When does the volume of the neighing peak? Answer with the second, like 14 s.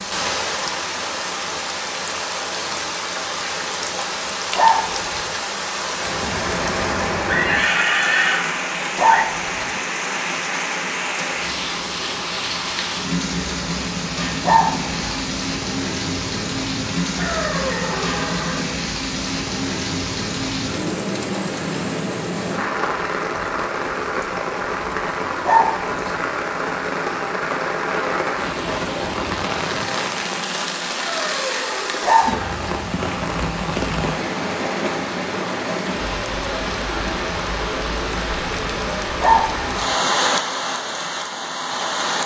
8 s.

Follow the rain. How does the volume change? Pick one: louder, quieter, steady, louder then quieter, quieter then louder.
steady.